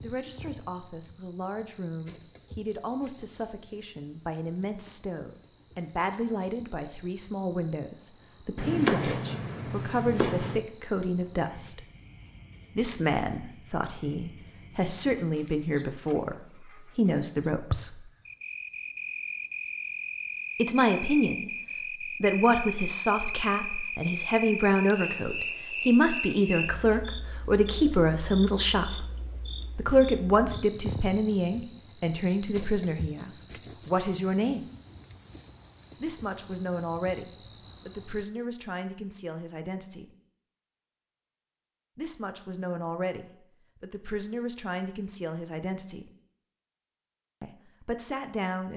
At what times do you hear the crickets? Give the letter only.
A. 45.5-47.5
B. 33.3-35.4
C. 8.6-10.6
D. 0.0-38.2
D.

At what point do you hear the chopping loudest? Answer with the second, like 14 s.
9 s.